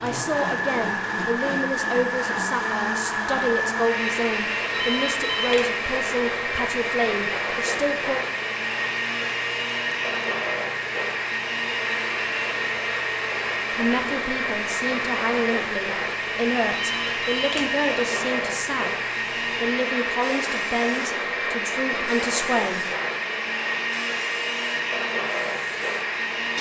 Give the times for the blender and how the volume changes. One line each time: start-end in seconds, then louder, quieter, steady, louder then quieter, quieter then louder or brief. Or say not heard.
0.0-26.5 steady.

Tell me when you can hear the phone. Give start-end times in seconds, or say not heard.
4.7-5.7, 16.7-17.8.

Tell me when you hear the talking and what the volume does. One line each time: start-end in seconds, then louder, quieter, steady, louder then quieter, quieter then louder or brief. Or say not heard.
0.0-8.2 steady
13.7-22.9 steady.